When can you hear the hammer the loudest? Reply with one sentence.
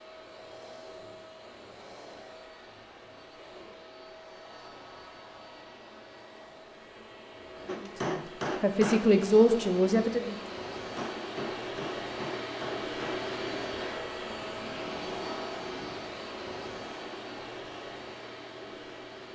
The loudest moment of the hammer is at 8 seconds.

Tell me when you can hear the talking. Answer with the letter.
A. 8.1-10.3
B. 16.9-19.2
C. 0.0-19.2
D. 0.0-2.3
A.